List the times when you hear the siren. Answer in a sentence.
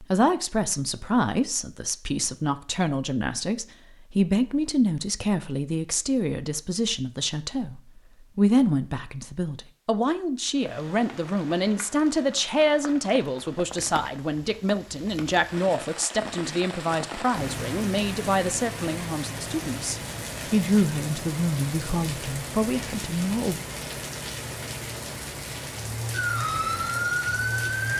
You can hear the siren from 26.1 to 27.9 s.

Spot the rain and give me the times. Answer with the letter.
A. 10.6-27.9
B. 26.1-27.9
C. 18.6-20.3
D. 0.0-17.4
A.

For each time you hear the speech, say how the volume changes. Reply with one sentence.
You can hear the speech from 0.0 to 23.6 s, at a steady volume.